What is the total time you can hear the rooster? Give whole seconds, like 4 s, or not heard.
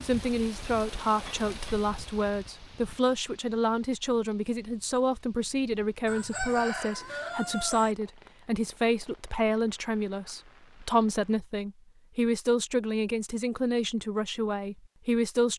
2 s.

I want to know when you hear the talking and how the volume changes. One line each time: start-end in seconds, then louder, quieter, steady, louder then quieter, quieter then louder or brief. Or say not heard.
0.0-15.5 steady.